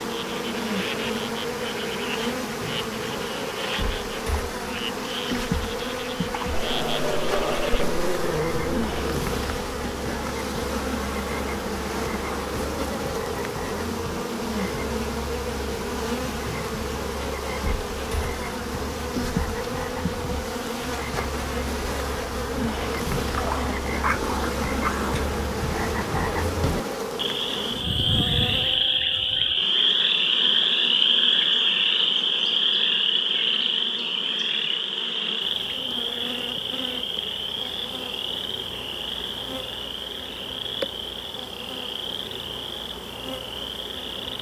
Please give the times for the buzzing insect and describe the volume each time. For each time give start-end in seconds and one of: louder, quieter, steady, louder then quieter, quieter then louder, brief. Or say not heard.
0.0-44.3 quieter.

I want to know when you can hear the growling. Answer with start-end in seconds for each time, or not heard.
6.5-9.3, 23.4-25.2.